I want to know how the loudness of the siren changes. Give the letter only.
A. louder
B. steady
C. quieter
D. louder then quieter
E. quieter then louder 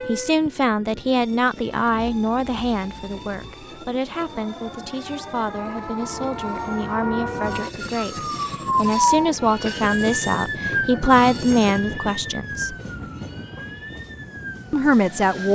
D.